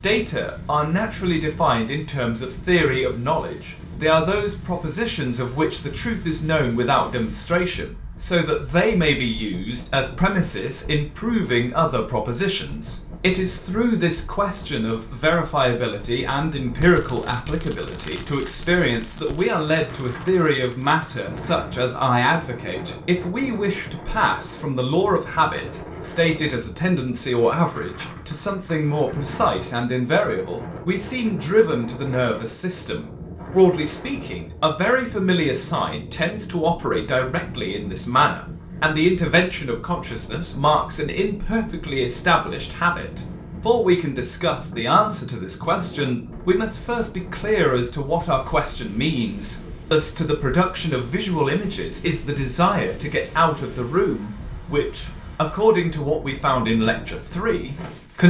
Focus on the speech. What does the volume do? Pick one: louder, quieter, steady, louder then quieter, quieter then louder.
steady.